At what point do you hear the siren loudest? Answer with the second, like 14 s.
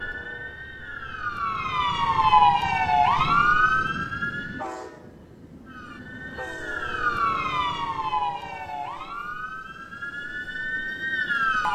3 s.